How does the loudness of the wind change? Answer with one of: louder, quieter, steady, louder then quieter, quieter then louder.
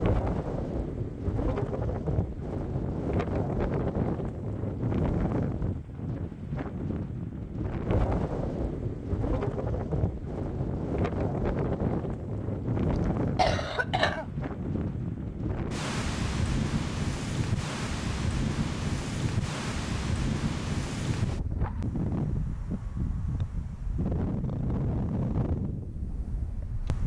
steady.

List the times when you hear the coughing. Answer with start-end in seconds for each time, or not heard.
12.8-14.3.